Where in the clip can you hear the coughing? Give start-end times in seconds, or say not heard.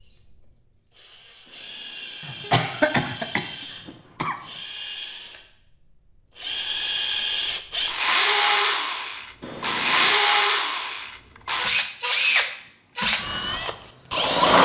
2.2-4.3.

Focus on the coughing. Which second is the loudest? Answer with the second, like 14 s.
3 s.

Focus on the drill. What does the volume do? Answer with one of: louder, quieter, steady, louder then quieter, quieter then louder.
louder.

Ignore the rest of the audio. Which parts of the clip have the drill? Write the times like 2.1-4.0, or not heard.
0.0-14.6.